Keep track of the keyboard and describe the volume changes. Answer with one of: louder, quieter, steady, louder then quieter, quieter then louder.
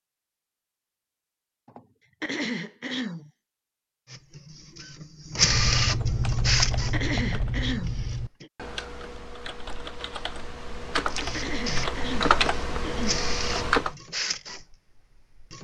quieter then louder.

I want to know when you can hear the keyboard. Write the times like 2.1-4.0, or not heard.
5.3-13.9.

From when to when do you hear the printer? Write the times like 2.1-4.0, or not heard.
4.0-8.4, 11.1-15.5.